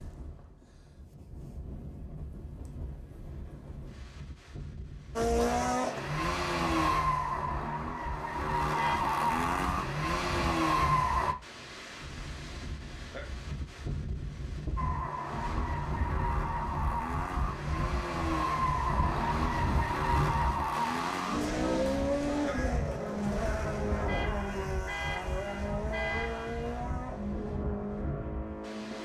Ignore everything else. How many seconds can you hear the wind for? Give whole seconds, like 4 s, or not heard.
29 s.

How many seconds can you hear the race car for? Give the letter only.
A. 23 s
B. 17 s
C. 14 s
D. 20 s
D.